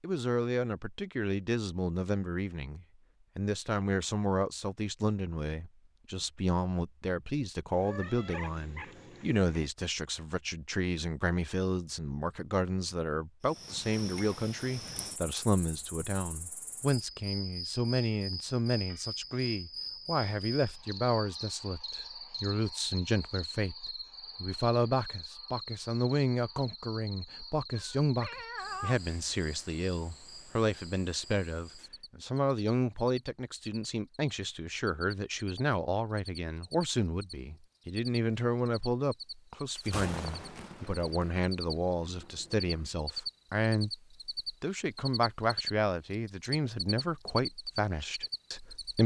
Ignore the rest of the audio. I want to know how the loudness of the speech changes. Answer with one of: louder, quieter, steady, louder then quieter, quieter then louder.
steady.